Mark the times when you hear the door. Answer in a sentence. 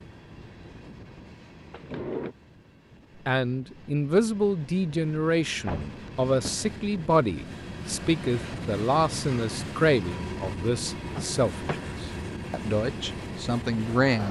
You can hear the door from 1.7 to 2.4 s, from 5.7 to 6.7 s and from 11.1 to 11.9 s.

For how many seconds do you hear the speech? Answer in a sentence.
You can hear the speech for 11 seconds altogether.